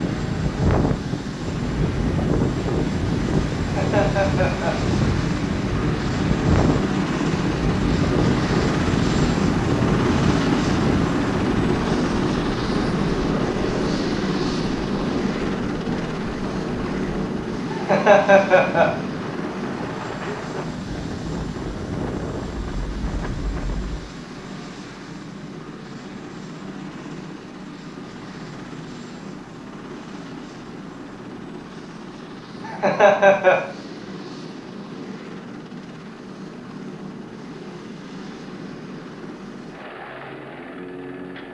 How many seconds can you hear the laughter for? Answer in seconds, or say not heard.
3 s.